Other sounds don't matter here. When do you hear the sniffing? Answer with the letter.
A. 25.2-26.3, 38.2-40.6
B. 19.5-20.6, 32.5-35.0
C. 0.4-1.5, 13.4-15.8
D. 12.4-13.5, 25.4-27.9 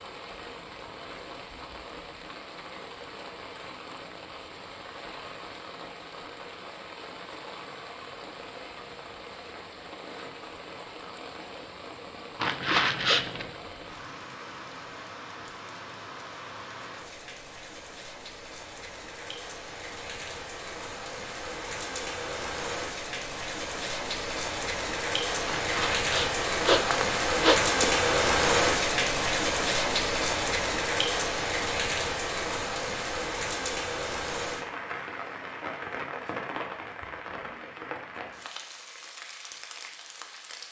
D.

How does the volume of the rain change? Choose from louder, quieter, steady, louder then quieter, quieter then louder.
louder then quieter.